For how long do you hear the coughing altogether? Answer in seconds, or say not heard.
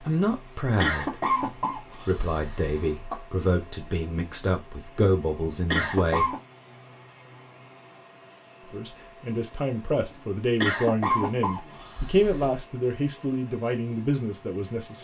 5 s.